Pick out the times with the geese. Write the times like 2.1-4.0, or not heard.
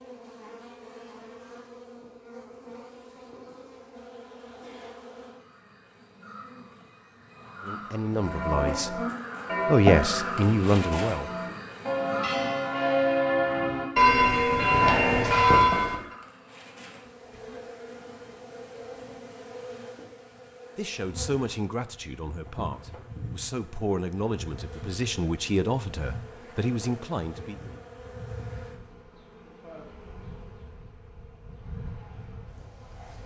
not heard.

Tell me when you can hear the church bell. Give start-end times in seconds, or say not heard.
8.1-15.9.